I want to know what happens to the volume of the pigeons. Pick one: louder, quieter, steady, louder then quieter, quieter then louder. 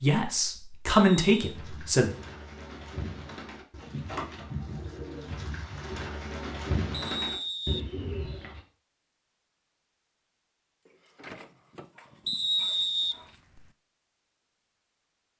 louder.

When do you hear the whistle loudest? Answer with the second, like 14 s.
13 s.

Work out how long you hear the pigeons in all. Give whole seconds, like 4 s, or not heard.
7 s.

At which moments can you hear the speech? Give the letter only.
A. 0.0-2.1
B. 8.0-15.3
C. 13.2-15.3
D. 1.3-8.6
A.